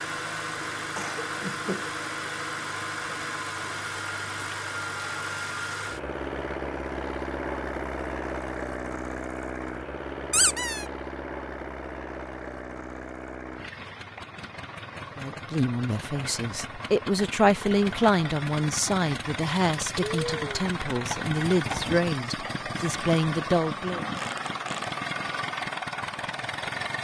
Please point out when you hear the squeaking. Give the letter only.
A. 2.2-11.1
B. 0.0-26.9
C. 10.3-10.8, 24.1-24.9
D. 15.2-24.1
C.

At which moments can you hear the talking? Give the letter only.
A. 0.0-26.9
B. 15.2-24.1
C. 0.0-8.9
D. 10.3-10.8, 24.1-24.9
B.